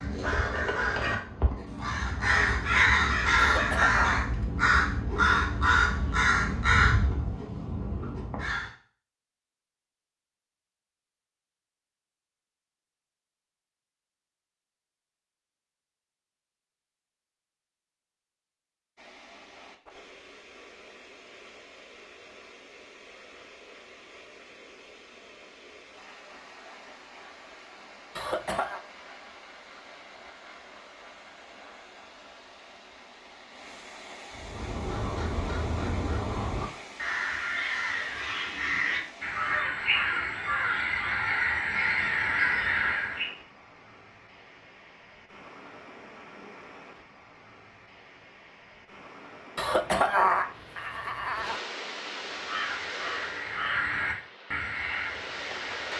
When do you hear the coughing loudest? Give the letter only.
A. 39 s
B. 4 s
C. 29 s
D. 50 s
D.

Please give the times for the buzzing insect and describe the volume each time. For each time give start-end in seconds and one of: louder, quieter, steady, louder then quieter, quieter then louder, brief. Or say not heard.
not heard.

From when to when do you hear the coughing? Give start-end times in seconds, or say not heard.
3.4-4.3, 28.1-28.8, 49.5-51.6.